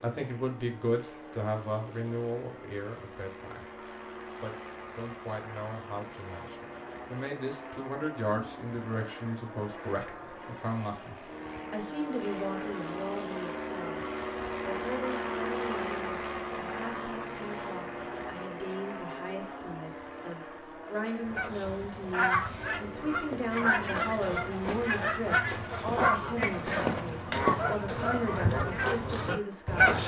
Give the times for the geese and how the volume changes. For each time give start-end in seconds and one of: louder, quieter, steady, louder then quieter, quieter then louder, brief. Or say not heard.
21.2-30.0 steady.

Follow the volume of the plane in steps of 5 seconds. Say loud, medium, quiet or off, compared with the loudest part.
medium, medium, loud, loud, medium, medium.